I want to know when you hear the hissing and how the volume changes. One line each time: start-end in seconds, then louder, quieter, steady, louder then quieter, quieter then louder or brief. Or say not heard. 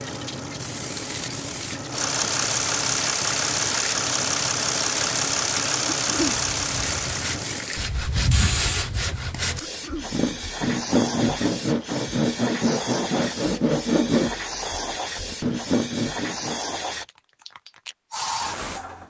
0.0-19.0 steady.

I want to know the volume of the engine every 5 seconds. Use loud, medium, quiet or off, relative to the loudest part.
loud, loud, off, off.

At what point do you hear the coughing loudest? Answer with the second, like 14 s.
6 s.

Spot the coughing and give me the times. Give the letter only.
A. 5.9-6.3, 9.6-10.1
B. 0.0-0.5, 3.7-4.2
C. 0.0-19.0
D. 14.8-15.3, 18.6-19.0
A.